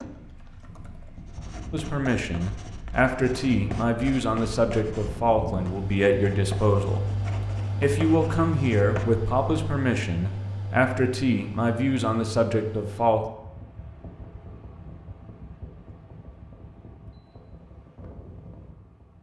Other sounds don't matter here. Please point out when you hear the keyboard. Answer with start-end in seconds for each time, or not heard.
0.0-1.3.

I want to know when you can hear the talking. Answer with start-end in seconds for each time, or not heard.
1.7-7.0, 7.8-13.2.